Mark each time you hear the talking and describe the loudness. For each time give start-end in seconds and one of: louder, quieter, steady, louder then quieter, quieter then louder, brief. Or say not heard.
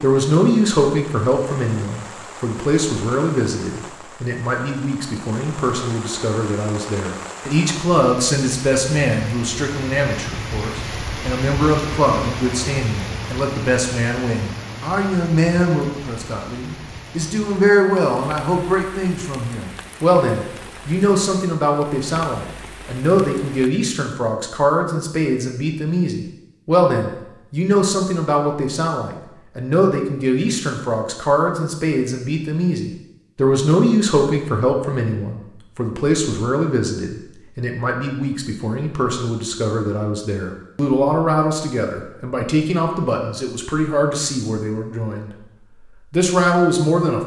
0.0-45.3 steady
46.1-47.2 brief.